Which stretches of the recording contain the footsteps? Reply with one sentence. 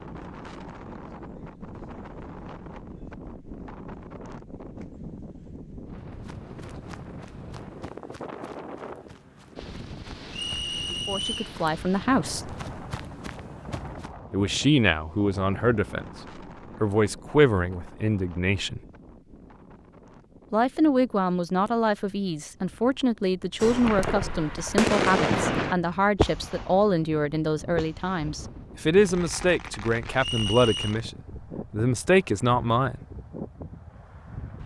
The footsteps can be heard from 6.0 to 14.2 s.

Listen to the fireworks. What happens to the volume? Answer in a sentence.
The loudness of the fireworks goes up, then down.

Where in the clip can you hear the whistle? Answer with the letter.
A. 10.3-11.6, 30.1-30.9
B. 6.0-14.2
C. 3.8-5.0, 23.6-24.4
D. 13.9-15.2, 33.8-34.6
A.